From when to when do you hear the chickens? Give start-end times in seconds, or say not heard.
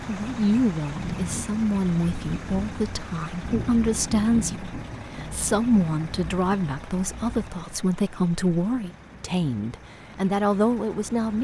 not heard.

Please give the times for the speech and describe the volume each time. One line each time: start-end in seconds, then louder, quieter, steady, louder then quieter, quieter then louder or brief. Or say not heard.
0.1-11.3 steady.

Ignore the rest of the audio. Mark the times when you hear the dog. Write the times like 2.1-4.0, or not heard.
not heard.